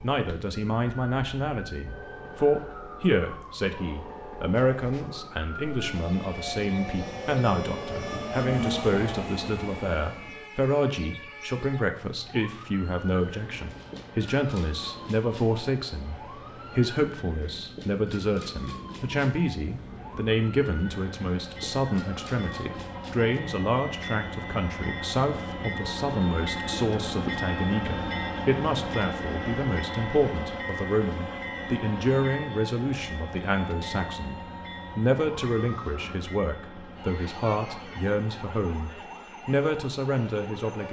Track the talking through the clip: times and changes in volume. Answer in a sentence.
The talking can be heard from 0.0 to 40.8 s, at a steady volume.